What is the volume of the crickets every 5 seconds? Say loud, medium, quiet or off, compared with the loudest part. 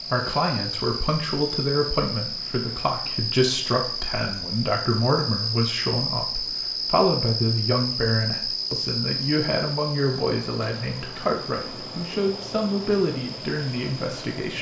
loud, loud, medium.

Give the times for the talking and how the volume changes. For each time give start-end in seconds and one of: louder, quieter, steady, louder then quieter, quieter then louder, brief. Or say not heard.
0.1-14.5 steady.